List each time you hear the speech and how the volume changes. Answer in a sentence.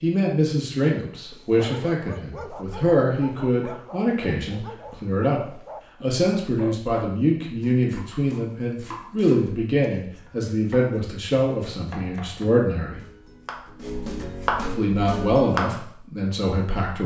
The speech can be heard from 0.0 to 13.0 s, at a steady volume; and briefly from 14.7 to 17.0 s.